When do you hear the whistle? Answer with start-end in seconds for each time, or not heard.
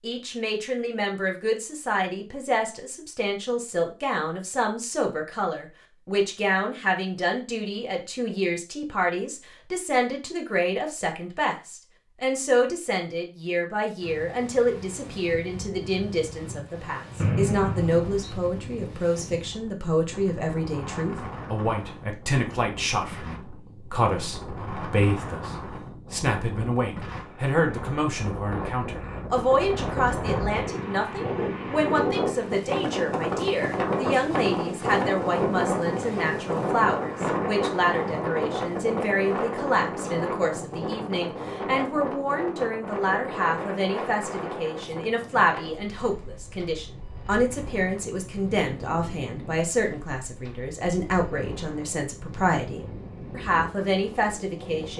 17.1-18.4.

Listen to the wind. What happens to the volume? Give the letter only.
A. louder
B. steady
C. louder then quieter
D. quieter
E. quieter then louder
C.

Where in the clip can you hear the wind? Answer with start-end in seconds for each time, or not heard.
14.0-54.9.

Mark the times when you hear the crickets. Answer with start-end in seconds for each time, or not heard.
not heard.